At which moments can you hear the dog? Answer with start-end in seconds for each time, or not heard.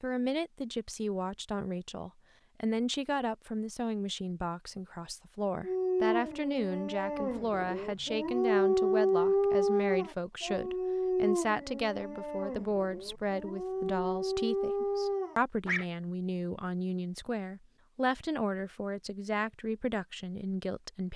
5.6-15.8.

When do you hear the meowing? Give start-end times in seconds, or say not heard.
not heard.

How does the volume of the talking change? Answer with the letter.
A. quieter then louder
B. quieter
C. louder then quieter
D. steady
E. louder
D.